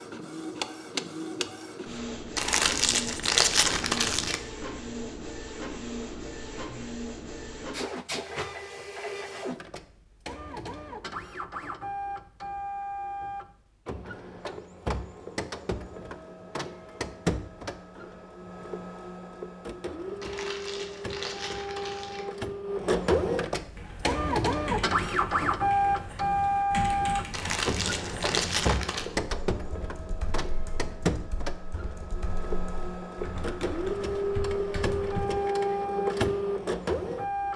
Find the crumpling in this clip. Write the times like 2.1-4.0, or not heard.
2.4-4.4, 20.2-22.2, 27.3-29.1.